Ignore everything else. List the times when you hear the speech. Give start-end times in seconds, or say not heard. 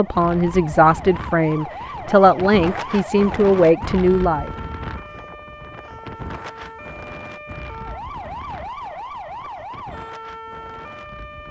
0.0-4.5.